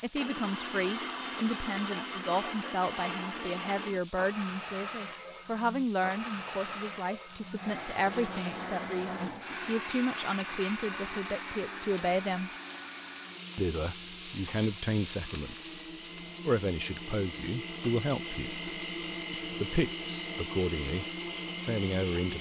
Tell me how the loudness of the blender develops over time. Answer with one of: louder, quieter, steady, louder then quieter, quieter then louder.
quieter then louder.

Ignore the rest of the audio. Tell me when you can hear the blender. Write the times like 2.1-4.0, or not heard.
0.1-22.3.